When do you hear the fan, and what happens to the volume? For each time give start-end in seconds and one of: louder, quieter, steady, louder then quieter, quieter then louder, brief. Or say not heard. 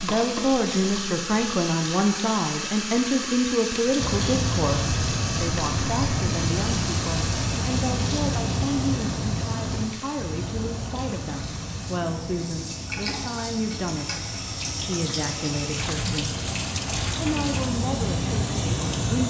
4.0-19.2 quieter then louder.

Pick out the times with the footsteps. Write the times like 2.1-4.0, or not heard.
not heard.